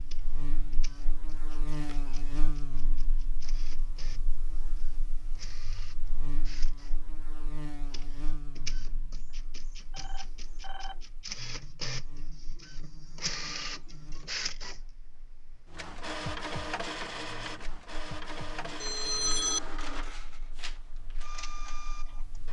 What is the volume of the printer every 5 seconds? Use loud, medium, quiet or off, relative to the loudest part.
quiet, medium, loud, loud, medium.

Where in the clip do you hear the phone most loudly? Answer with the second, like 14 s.
19 s.